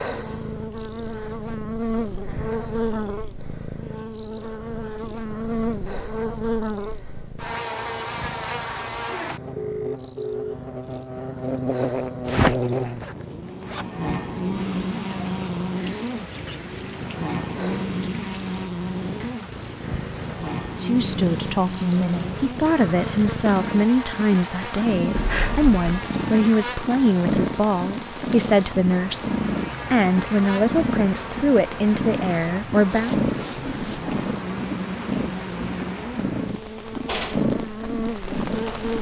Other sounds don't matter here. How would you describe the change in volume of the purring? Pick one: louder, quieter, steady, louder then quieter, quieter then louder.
louder.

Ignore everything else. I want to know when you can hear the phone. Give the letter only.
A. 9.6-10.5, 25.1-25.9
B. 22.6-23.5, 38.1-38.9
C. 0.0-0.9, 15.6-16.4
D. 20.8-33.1
A.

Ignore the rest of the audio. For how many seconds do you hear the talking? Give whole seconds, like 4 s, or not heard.
12 s.